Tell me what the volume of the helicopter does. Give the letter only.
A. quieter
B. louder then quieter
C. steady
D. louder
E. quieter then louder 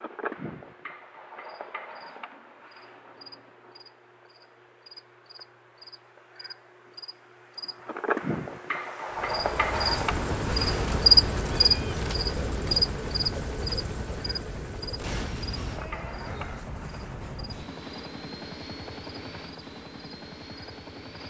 A.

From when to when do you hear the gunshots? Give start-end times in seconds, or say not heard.
not heard.